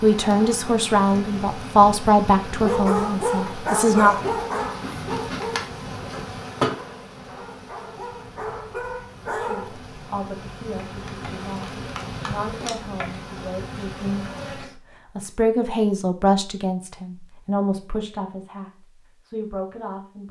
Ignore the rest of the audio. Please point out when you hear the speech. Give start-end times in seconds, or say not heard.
0.0-4.3, 9.2-20.2.